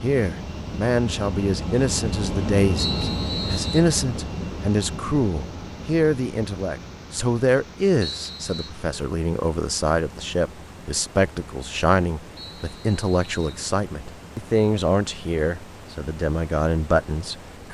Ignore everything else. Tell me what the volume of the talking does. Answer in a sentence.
The loudness of the talking stays about the same.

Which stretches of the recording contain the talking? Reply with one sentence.
The talking can be heard from 0.0 to 17.6 s.